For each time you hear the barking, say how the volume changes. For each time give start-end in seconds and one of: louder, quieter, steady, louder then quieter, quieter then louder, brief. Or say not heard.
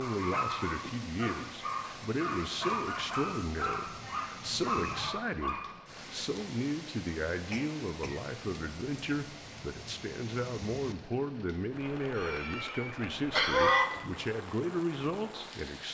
0.0-5.8 steady.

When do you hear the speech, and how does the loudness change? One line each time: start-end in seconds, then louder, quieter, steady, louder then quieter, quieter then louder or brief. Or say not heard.
0.0-15.9 steady.